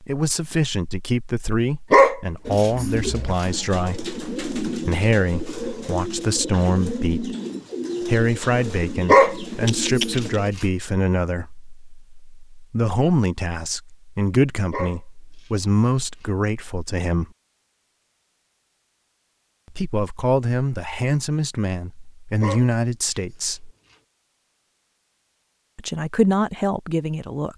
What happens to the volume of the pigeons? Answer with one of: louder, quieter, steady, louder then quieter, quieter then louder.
steady.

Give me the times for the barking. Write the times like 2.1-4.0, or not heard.
1.9-3.5, 9.1-10.7, 14.7-16.2, 22.4-23.9.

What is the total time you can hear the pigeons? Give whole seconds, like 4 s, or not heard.
8 s.